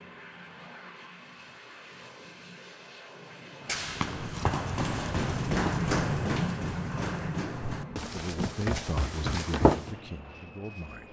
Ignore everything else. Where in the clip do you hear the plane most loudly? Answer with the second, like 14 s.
6 s.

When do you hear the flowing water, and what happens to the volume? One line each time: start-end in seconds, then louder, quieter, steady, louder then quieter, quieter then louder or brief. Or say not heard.
not heard.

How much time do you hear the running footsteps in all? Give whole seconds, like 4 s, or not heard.
6 s.